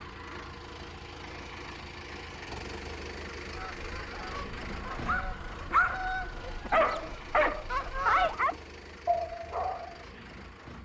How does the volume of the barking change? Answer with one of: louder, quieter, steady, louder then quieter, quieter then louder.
quieter.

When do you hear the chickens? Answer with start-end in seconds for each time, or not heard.
3.5-8.3.